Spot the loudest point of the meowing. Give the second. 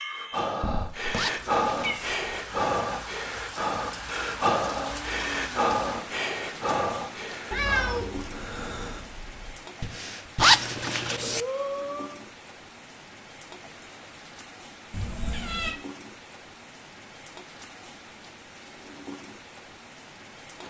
8 s.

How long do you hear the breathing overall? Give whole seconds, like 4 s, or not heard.
12 s.